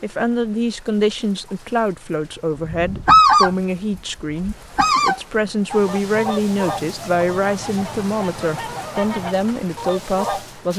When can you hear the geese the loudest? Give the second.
3 s.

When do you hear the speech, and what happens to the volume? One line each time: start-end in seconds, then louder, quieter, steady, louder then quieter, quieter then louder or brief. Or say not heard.
0.0-10.7 steady.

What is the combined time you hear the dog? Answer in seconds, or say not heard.
not heard.